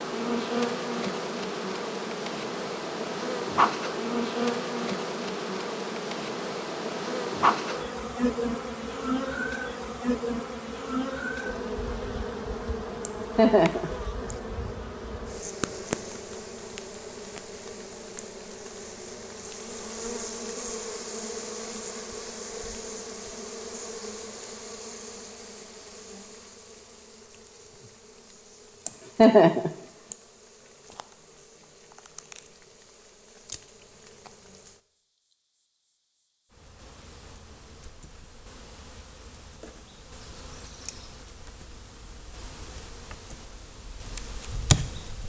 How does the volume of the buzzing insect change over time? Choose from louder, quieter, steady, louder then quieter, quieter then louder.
quieter then louder.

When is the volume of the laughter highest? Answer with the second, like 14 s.
29 s.